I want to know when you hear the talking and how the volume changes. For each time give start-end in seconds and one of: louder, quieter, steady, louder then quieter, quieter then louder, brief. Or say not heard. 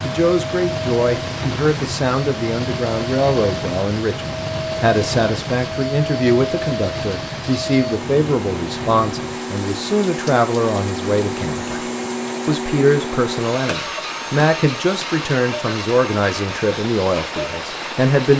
0.0-18.3 steady.